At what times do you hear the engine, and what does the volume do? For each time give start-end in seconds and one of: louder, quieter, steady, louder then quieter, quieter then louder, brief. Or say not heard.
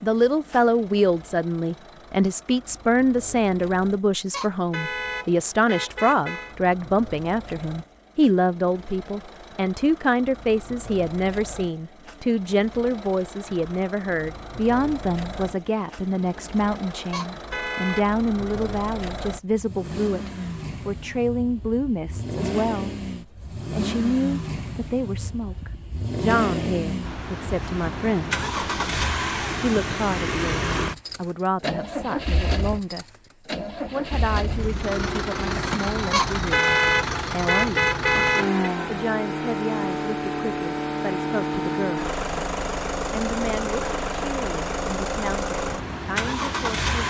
0.0-47.0 louder.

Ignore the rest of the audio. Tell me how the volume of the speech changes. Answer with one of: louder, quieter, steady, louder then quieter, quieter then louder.
quieter.